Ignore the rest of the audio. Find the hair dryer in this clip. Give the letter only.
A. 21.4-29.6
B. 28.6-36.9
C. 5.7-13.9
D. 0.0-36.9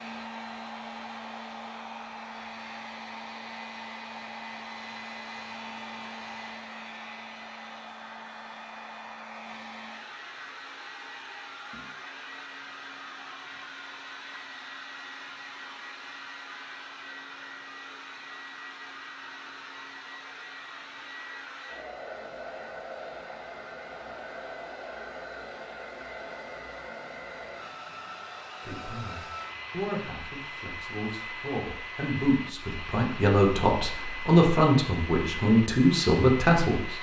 D.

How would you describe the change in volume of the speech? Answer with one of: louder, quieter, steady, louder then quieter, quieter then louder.
louder.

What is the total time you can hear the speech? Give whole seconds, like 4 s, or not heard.
8 s.